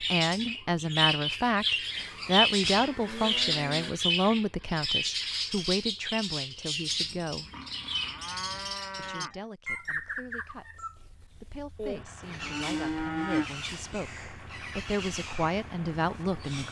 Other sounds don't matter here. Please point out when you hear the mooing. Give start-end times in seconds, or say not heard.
1.9-3.9, 7.5-9.4, 11.8-13.4.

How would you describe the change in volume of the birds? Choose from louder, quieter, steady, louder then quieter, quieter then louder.
quieter.